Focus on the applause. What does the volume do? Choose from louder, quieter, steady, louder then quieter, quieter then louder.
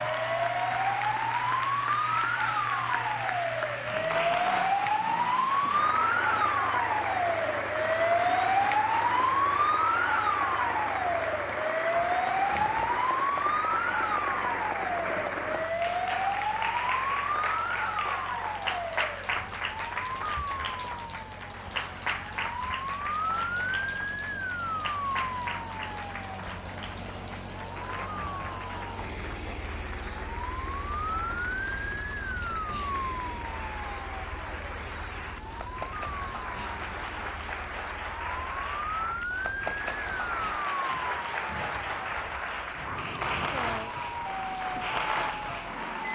quieter then louder.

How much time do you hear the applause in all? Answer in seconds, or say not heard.
46 s.